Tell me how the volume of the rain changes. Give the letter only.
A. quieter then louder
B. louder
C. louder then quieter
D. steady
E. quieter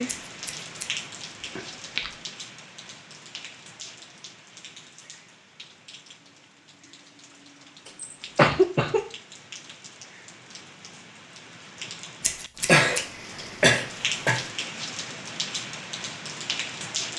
A.